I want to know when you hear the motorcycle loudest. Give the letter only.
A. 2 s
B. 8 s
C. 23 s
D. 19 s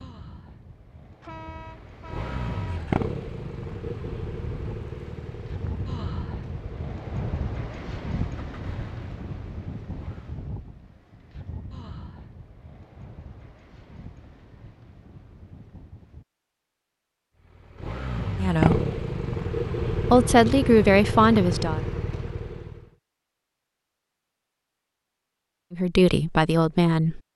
D.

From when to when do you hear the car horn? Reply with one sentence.
You can hear the car horn from 1.2 to 2.9 s.